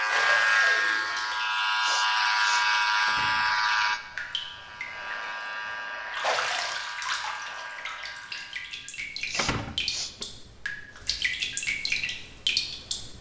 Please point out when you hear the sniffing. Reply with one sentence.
You can hear the sniffing from 1.8 to 2.6 s and from 9.2 to 10.2 s.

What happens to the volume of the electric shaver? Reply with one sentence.
The loudness of the electric shaver goes down.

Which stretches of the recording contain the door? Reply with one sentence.
You can hear the door from 3.0 to 4.0 s and from 9.3 to 10.2 s.